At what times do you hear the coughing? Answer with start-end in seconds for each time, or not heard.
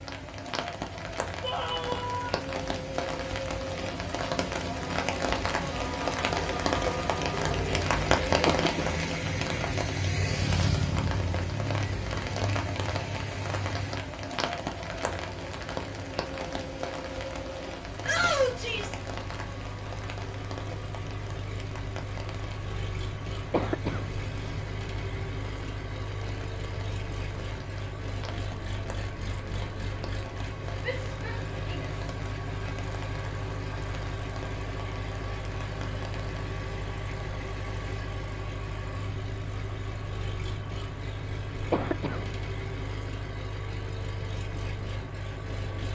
8.4-9.1, 23.5-24.1, 41.7-42.3.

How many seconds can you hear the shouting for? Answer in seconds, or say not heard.
3 s.